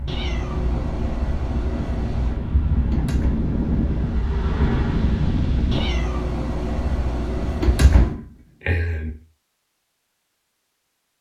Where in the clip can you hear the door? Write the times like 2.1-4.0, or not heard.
2.8-3.5, 7.5-9.1.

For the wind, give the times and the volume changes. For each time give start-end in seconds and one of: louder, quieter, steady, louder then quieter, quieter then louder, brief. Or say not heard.
0.0-5.9 louder.